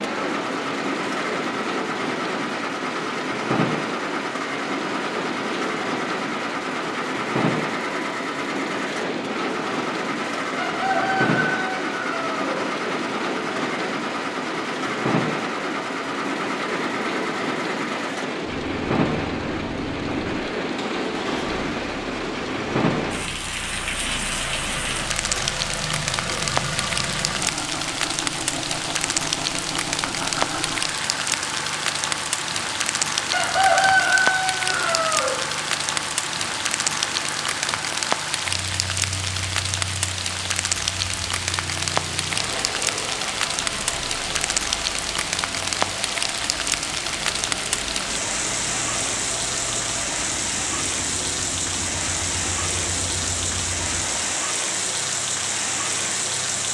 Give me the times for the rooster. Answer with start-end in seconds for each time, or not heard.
10.6-12.6, 33.3-35.4.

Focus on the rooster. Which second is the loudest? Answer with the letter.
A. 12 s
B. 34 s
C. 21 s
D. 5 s
B.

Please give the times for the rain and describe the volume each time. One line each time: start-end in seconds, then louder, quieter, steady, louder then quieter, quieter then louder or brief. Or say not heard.
0.0-56.6 steady.